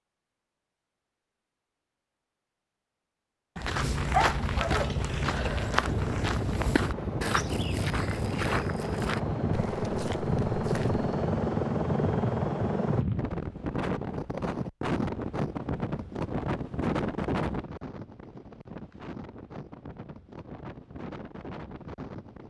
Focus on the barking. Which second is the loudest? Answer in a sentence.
The volume of the barking peaks at 4 seconds.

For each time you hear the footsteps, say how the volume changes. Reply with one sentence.
You can hear the footsteps from 3.5 to 11.1 s, getting quieter.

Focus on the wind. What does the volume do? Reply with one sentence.
The loudness of the wind goes down.